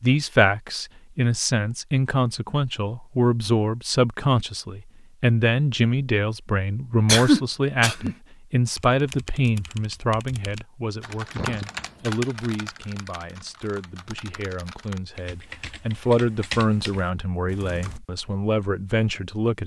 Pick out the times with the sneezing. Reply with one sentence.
You can hear the sneezing from 7.0 to 8.2 s and from 11.3 to 11.9 s.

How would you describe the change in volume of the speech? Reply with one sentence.
The volume of the speech goes down, then up.